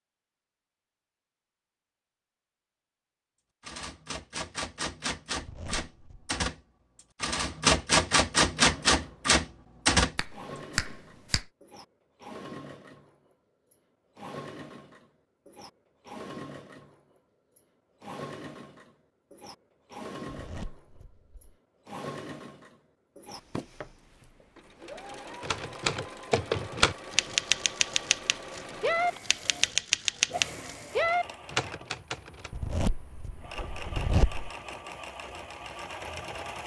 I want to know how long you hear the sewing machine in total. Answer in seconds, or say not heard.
28 s.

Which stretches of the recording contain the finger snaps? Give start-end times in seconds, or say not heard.
10.2-11.5.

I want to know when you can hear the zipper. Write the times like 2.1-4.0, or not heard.
5.3-6.3, 20.3-21.6, 32.5-34.5.